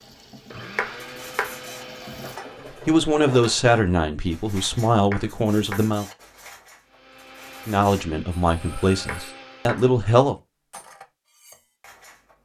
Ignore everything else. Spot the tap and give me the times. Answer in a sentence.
You can hear the tap from 0.0 to 2.4 s.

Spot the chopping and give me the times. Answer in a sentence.
You can hear the chopping from 0.8 to 1.6 s, from 5.1 to 6.0 s and from 9.1 to 9.9 s.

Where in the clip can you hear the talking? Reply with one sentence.
You can hear the talking from 2.9 to 6.0 s and from 7.7 to 10.3 s.